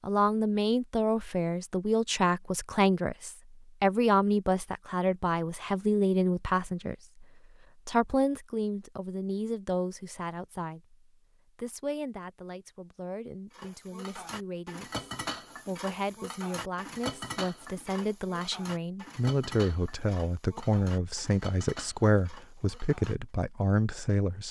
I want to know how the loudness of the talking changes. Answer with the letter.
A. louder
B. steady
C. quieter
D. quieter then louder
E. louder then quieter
D.